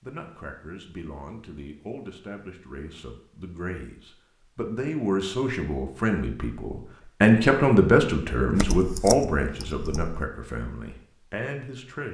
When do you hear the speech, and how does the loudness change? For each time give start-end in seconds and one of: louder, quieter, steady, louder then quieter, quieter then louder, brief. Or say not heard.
0.0-12.1 louder then quieter.